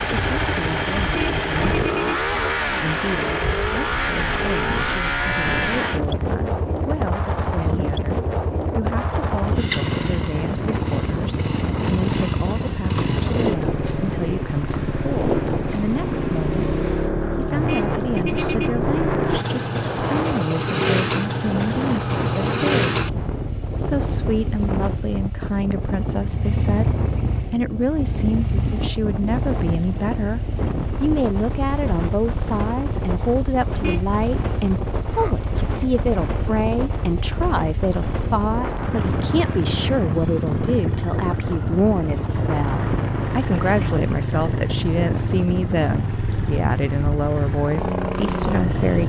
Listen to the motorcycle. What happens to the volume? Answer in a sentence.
The volume of the motorcycle goes down, then up.